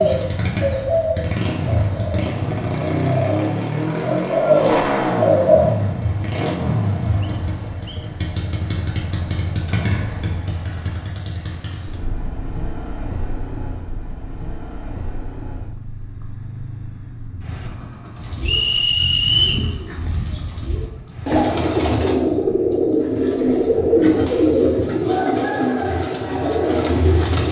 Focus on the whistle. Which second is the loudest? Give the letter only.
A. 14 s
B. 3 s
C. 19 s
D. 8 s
C.